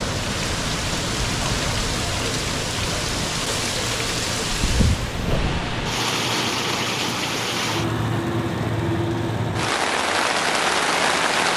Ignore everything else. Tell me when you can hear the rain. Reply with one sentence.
The rain can be heard from 0.0 to 11.5 s.